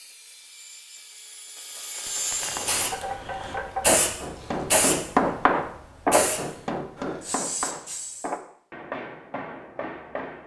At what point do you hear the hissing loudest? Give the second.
4 s.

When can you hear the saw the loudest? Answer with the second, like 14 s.
2 s.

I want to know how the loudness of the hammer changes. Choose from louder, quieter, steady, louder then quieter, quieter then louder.
louder then quieter.